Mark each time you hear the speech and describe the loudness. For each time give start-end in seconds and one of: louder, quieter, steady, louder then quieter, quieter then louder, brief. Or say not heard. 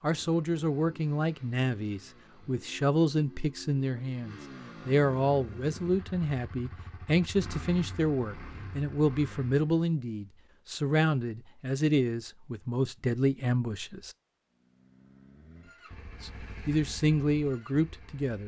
0.0-14.2 steady
16.2-18.4 brief.